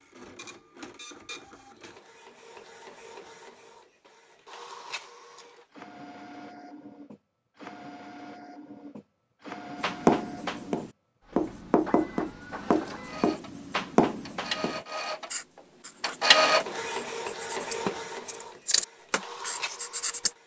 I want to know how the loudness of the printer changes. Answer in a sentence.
The volume of the printer goes up.